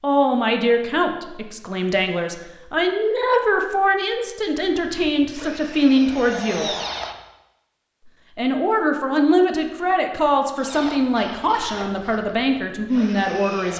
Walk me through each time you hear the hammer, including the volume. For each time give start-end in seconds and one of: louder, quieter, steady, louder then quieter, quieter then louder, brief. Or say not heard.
not heard.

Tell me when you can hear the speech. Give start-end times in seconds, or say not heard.
0.0-6.7, 8.3-13.7.